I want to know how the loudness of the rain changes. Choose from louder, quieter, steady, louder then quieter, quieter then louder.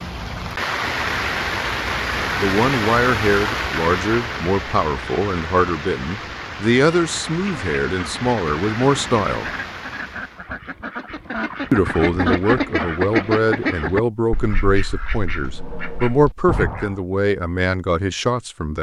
quieter.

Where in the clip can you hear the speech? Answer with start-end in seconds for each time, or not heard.
2.4-9.5, 11.7-18.7.